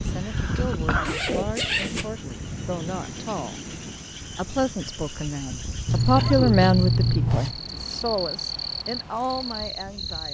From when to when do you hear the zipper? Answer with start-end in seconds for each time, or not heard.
1.1-2.1, 5.8-7.5.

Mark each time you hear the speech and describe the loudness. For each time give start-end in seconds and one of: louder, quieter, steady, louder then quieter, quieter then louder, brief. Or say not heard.
0.0-10.2 louder then quieter.